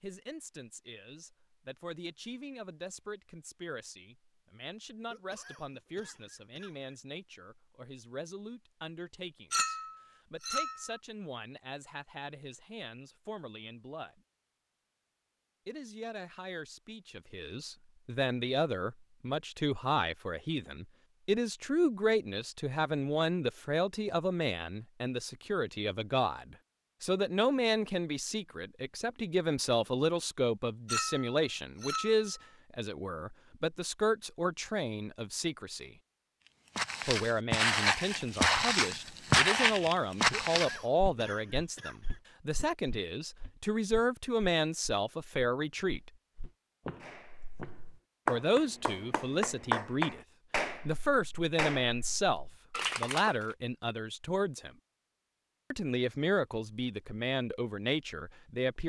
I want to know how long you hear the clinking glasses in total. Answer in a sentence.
You can hear the clinking glasses for 3 seconds altogether.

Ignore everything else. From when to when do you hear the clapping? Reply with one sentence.
The clapping can be heard from 47.0 to 53.5 s.